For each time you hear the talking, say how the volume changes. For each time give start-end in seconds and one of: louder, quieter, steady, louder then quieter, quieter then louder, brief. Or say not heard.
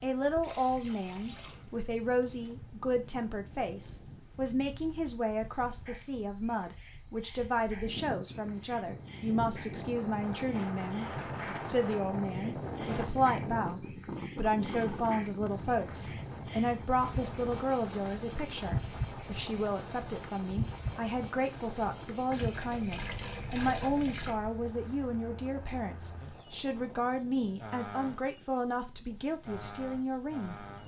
0.0-30.6 steady.